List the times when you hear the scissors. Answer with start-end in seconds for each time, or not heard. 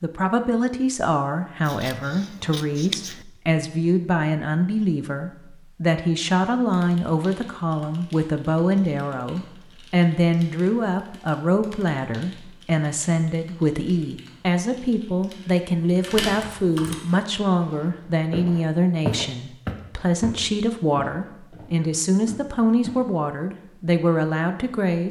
1.6-3.2.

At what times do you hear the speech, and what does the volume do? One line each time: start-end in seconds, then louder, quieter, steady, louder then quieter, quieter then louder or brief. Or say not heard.
0.0-25.0 steady.